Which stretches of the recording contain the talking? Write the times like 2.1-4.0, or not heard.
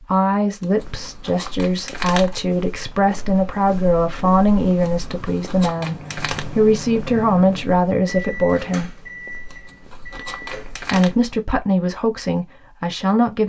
0.0-8.9, 10.2-13.4.